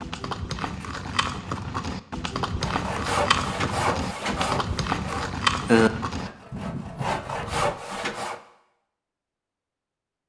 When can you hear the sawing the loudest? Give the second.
6 s.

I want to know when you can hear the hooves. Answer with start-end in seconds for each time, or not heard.
0.0-7.8.